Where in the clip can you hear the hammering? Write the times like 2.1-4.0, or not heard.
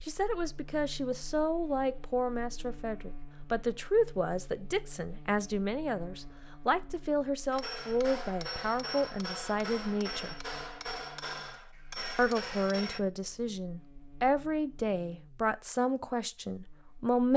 7.5-13.0.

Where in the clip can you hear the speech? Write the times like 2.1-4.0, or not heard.
0.1-10.3, 12.2-17.3.